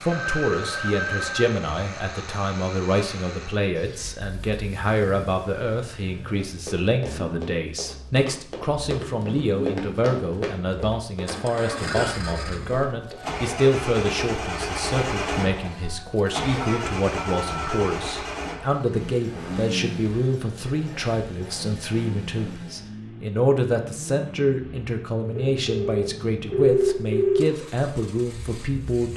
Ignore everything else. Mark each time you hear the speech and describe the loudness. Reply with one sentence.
The speech can be heard from 0.0 to 29.1 s, at a steady volume.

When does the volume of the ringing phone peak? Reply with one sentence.
The volume of the ringing phone peaks at 27 seconds.